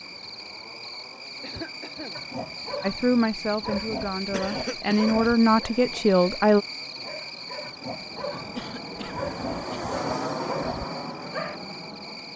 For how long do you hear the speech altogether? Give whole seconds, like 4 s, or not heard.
4 s.